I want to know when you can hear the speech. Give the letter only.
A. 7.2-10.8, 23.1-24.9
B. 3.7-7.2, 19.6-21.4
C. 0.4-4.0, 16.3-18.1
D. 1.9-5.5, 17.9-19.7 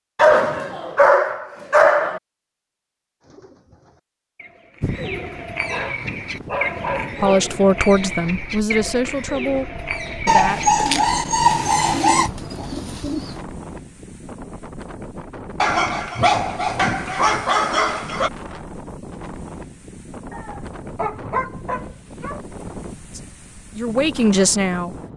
A.